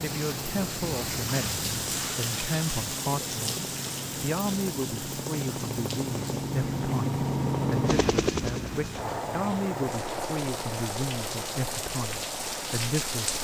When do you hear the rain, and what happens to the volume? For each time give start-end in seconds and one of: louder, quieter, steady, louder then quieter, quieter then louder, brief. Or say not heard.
0.0-13.3 quieter then louder.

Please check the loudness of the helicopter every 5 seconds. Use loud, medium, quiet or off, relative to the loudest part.
medium, loud, medium.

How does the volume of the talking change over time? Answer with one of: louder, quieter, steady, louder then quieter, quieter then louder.
steady.